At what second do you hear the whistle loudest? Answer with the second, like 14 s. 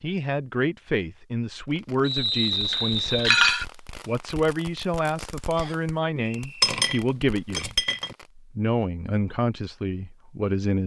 2 s.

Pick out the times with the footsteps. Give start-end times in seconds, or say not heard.
not heard.